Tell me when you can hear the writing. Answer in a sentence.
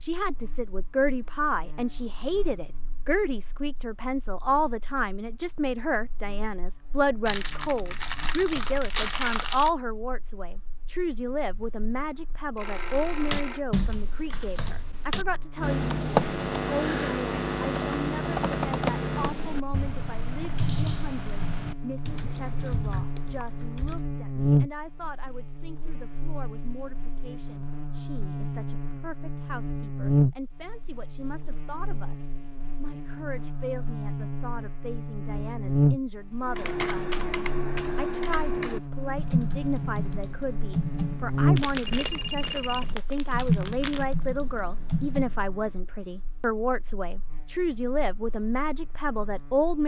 The writing can't be heard in this clip.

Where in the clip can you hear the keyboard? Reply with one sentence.
You can hear the keyboard from 12.8 to 24.0 s and from 36.4 to 45.4 s.